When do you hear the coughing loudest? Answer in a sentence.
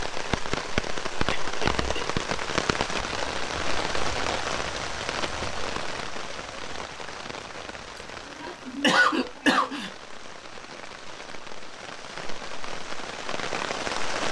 The loudest moment of the coughing is at 9 seconds.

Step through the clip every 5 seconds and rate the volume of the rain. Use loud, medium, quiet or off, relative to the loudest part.
loud, medium, medium.